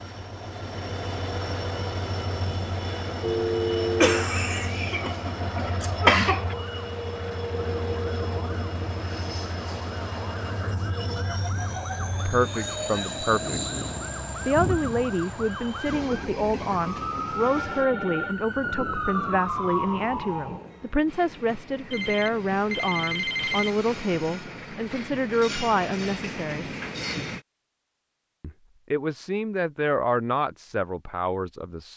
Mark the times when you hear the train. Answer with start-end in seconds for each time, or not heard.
0.0-27.4.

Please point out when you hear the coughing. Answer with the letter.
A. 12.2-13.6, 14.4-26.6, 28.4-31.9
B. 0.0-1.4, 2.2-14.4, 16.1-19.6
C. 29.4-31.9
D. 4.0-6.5
D.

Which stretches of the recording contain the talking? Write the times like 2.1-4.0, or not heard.
12.2-13.6, 14.4-26.6, 28.4-31.9.